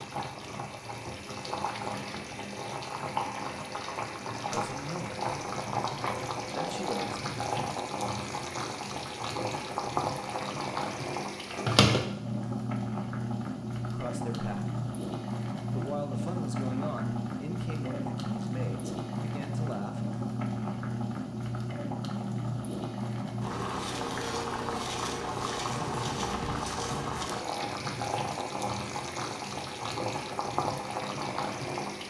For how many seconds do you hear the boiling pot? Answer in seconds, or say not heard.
32 s.